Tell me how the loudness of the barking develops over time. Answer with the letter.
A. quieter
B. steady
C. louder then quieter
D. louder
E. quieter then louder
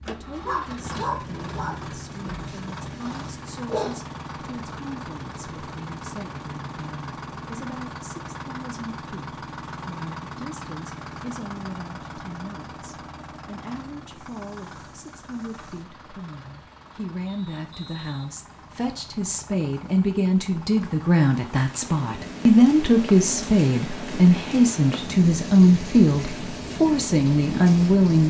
A.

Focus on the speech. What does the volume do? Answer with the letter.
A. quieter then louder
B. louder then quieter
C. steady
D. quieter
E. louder
E.